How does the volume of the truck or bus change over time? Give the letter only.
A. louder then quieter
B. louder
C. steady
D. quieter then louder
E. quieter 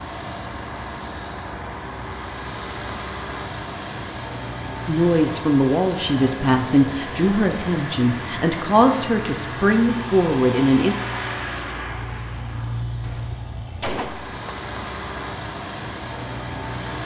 C.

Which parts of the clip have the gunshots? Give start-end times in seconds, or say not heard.
13.0-14.4.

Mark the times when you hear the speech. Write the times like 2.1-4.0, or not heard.
4.8-10.9.